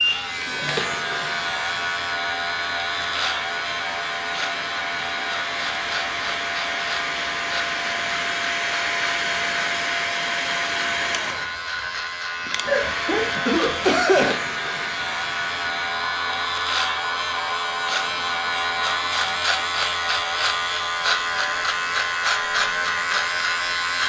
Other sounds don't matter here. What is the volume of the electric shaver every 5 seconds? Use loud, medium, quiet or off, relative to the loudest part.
loud, medium, medium, loud, loud.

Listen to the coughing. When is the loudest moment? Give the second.
14 s.